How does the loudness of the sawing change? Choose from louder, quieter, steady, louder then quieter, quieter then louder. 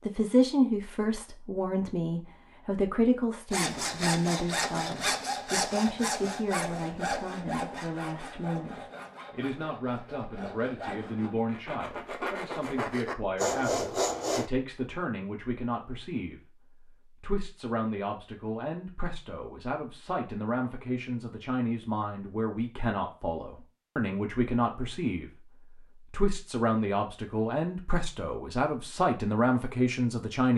quieter then louder.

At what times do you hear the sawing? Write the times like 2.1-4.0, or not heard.
3.5-14.5.